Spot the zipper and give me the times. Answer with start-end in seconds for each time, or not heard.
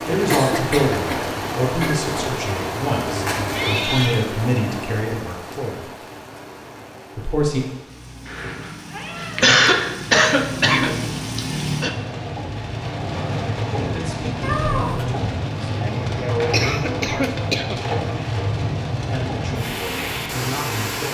not heard.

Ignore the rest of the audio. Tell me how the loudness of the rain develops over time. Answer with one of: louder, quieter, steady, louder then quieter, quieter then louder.
quieter then louder.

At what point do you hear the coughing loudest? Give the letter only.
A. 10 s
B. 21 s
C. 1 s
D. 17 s
A.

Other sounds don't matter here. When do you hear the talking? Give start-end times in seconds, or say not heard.
0.1-5.8, 7.2-7.6, 13.7-17.6, 19.1-21.1.